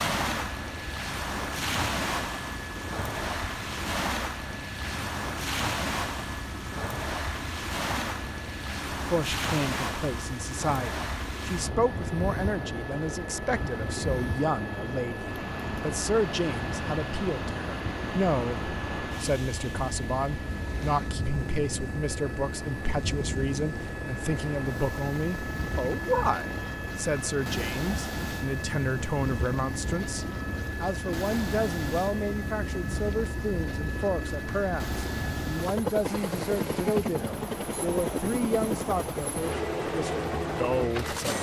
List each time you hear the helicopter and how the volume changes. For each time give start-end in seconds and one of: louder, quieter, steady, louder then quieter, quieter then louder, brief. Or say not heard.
0.2-41.3 louder.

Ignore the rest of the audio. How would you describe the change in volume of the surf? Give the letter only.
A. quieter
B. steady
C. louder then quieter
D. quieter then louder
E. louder
A.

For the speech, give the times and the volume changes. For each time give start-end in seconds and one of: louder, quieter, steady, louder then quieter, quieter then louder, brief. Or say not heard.
8.9-41.3 steady.